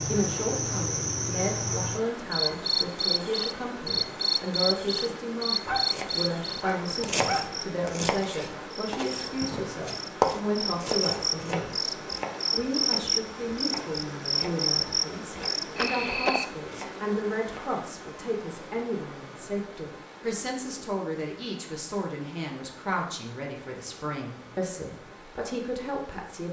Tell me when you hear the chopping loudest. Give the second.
10 s.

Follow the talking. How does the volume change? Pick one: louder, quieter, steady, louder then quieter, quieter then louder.
steady.